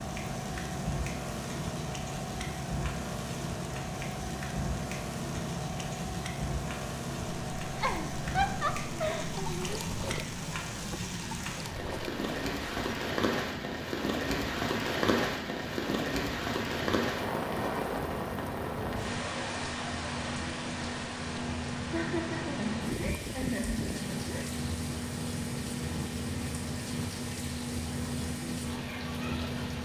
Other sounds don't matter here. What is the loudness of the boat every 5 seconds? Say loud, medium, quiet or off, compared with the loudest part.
loud, loud, medium, medium, loud, loud.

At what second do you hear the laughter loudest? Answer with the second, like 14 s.
9 s.